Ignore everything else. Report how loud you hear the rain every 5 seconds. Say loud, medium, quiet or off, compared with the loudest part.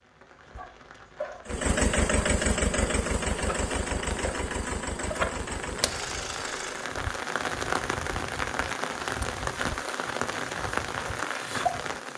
medium, loud, loud.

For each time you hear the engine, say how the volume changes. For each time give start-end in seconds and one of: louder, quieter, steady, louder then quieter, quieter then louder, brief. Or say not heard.
1.4-7.0 quieter.